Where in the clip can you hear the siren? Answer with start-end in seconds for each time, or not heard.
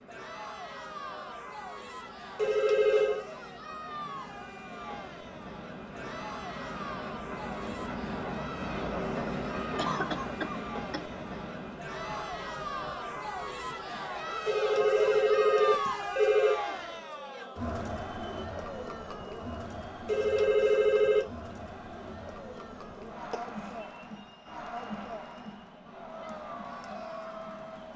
not heard.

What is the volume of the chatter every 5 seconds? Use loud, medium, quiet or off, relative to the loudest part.
medium, medium, loud, loud, medium, medium.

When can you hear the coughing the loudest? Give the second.
10 s.